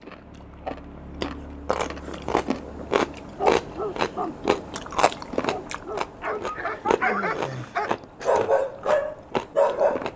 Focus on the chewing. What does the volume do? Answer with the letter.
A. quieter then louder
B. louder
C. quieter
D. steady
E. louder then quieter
E.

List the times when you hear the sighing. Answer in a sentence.
You can hear the sighing from 7.0 to 7.8 s.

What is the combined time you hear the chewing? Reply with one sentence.
The chewing can be heard for 10 seconds in total.